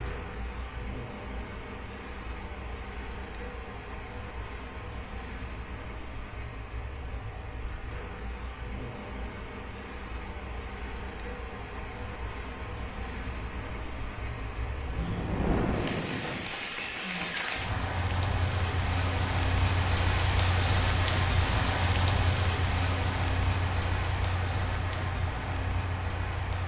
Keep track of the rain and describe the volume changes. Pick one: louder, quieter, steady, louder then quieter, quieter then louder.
louder.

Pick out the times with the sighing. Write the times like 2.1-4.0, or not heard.
14.8-17.4.